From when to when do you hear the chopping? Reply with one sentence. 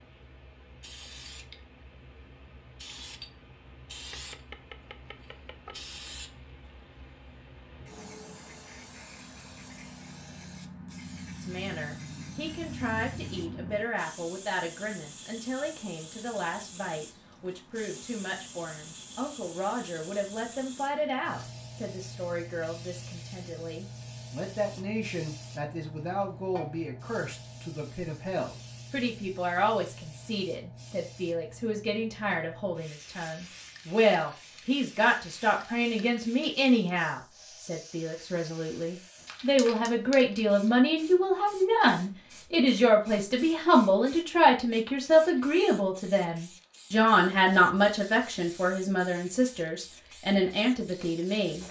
You can hear the chopping from 4.0 to 5.8 s.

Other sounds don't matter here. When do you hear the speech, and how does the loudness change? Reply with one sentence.
The speech can be heard from 11.4 to 51.6 s, getting louder.